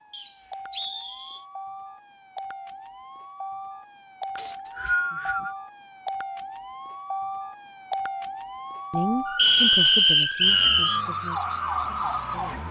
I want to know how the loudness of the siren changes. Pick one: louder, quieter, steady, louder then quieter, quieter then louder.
louder.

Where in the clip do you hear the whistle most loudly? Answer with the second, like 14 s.
10 s.